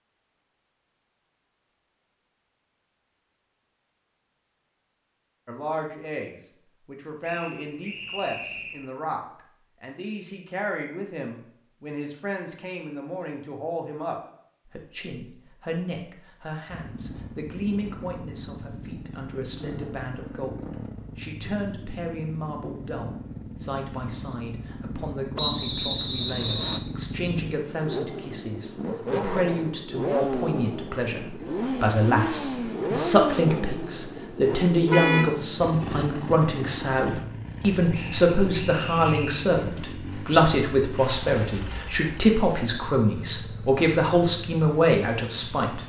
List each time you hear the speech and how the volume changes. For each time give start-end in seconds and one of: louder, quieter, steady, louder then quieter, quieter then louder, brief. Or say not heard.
5.5-45.8 louder.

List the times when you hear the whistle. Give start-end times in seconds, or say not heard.
7.2-8.8, 25.4-26.8, 37.9-39.3.